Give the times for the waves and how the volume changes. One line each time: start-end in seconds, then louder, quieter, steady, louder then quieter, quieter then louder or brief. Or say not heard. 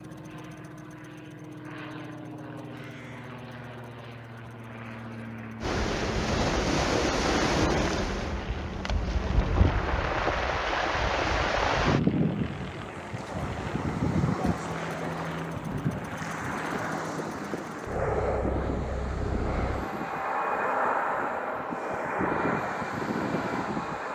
5.6-24.1 quieter.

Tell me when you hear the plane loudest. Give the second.
21 s.